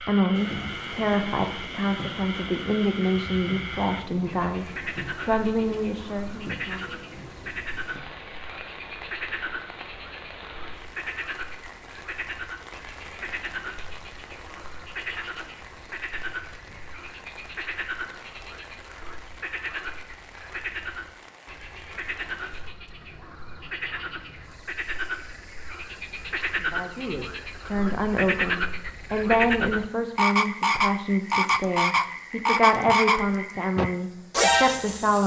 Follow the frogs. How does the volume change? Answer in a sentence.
The loudness of the frogs goes up.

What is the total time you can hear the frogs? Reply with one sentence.
You can hear the frogs for 35 seconds altogether.